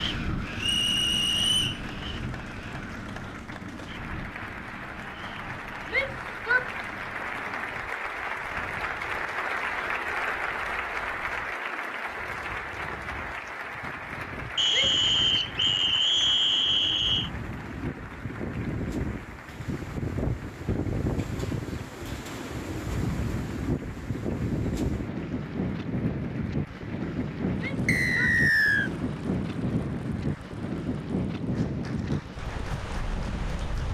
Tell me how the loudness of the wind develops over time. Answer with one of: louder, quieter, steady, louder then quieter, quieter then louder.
quieter then louder.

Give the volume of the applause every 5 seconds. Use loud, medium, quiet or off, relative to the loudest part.
medium, loud, loud, medium, quiet, quiet, quiet.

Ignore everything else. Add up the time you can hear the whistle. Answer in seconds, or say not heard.
5 s.